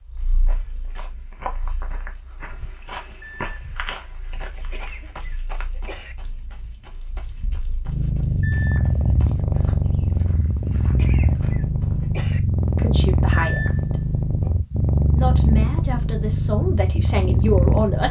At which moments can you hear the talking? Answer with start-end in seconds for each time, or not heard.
12.8-14.0, 15.0-18.0.